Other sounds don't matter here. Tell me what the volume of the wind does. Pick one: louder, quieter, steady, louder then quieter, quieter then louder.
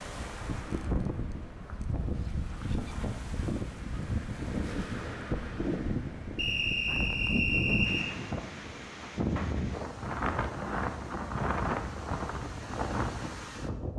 steady.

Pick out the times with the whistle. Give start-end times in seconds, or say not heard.
6.3-8.1.